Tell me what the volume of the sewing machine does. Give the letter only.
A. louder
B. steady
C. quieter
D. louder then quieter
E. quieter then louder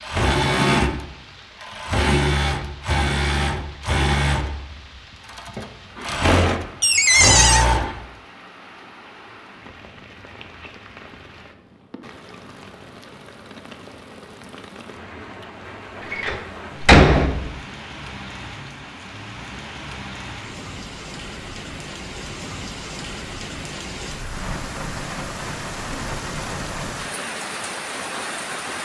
E.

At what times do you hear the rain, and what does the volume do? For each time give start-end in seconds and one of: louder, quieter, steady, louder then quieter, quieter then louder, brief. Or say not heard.
0.0-28.8 louder.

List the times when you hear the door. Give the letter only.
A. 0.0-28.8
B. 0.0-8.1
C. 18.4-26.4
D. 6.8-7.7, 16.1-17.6
D.